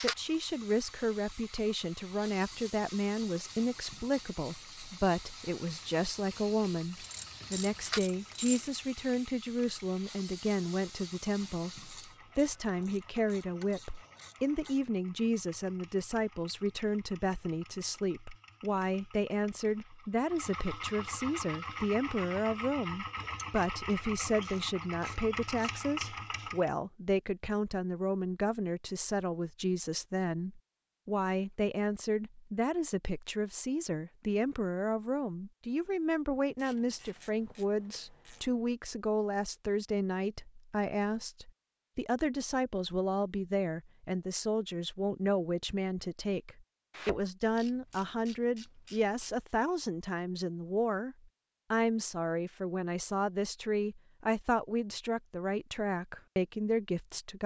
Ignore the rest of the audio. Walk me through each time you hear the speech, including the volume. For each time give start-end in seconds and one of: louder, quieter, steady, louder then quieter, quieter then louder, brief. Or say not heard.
0.0-57.4 steady.